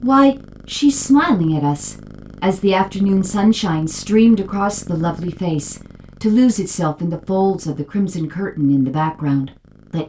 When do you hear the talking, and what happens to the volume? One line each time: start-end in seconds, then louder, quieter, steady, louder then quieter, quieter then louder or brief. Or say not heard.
0.0-10.0 steady.